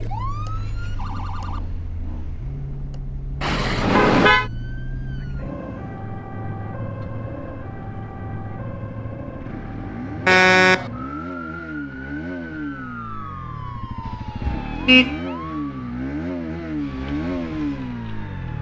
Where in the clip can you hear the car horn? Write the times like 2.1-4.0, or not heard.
3.4-4.5, 10.2-10.9, 14.1-15.2.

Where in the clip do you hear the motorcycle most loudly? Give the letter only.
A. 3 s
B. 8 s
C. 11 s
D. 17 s
D.